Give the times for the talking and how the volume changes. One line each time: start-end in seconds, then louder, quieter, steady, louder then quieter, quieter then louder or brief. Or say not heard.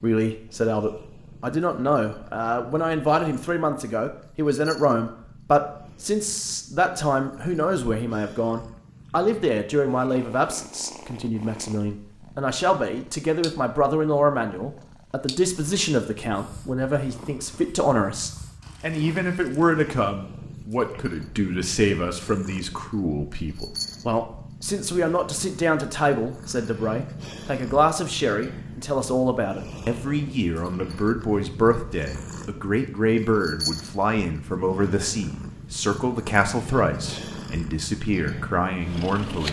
0.0-39.4 steady.